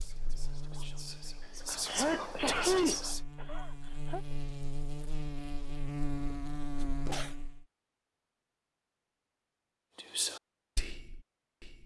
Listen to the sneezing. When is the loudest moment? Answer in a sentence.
The volume of the sneezing peaks at 3 seconds.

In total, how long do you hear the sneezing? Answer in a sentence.
The sneezing can be heard for 3 seconds in total.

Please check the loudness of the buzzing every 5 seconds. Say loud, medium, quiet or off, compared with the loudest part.
medium, loud, off.